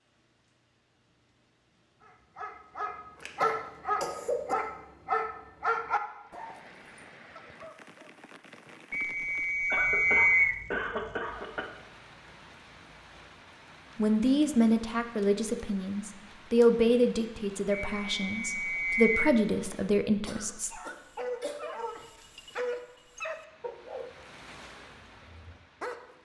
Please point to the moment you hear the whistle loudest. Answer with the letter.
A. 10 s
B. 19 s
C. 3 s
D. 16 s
A.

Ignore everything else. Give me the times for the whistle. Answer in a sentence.
The whistle can be heard from 8.9 to 10.6 s and from 17.7 to 19.4 s.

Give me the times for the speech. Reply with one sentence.
The speech can be heard from 13.9 to 20.7 s.